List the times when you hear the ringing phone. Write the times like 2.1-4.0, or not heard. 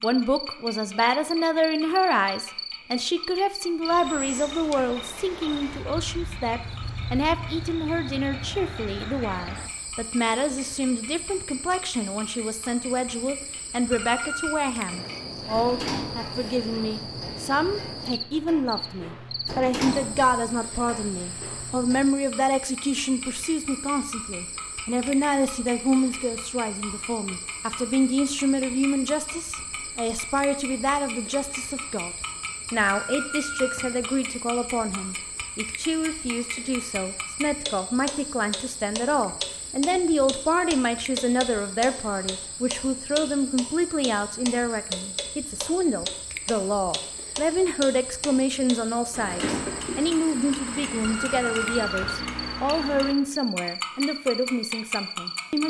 13.9-14.6, 32.8-33.9, 51.0-52.1.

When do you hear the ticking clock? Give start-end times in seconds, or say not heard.
0.0-55.6.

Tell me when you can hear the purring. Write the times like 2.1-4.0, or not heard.
not heard.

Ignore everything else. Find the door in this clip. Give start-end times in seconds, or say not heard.
15.5-16.4, 19.4-20.3, 49.1-49.9.